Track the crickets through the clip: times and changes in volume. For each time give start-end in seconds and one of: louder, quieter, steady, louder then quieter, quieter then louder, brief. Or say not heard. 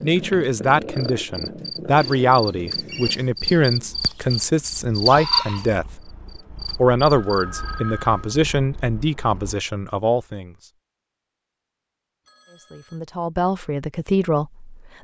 0.0-7.8 louder then quieter.